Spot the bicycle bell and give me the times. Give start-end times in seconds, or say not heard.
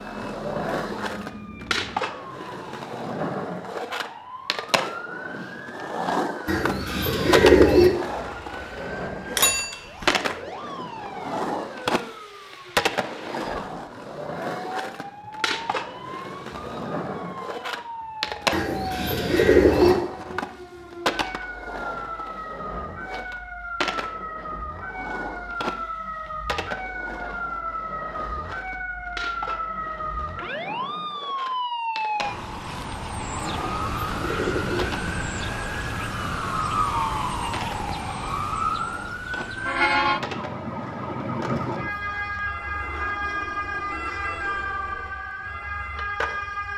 9.3-10.2.